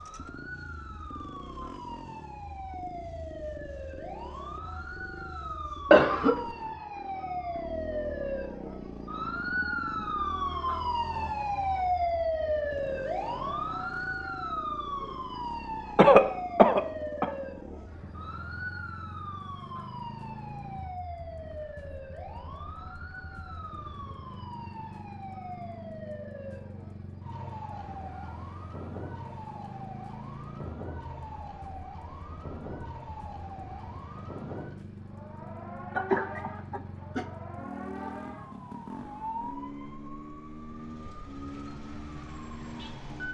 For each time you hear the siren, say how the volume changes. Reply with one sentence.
The siren can be heard from 0.0 to 43.2 s, getting louder then quieter.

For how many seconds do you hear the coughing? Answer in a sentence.
You can hear the coughing for 3 seconds altogether.